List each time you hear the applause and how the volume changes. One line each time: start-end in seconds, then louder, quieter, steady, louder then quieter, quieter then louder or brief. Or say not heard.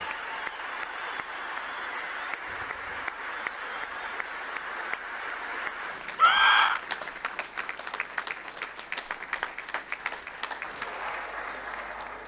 0.0-12.2 steady.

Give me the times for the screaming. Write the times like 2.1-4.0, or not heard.
6.2-6.8.